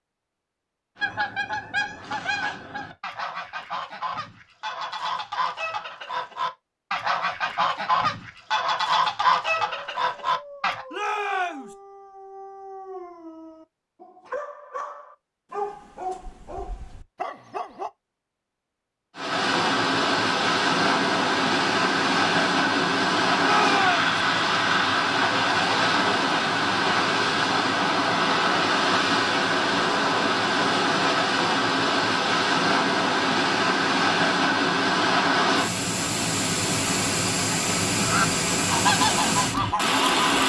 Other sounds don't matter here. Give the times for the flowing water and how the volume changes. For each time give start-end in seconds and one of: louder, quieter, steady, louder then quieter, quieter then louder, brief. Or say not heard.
19.1-40.4 steady.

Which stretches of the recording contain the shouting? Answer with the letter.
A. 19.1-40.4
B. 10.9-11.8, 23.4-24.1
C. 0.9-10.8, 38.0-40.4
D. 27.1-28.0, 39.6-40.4
B.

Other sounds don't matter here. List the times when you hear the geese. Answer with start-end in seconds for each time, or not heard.
0.9-10.8, 38.0-40.4.